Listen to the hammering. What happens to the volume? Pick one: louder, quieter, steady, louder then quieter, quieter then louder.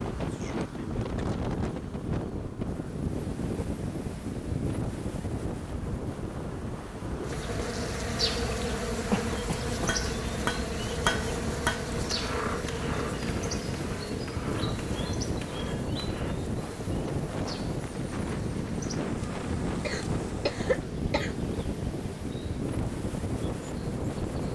quieter.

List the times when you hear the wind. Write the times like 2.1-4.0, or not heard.
0.0-24.5.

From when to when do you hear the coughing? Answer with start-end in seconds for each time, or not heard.
9.1-9.9, 19.8-21.4.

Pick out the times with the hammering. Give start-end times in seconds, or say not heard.
9.8-16.4.